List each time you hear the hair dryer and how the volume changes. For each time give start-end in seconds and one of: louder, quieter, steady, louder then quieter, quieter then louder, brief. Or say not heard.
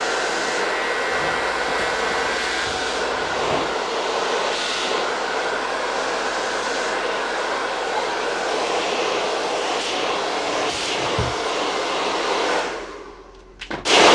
0.0-14.1 steady.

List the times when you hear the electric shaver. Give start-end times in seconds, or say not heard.
0.0-2.6.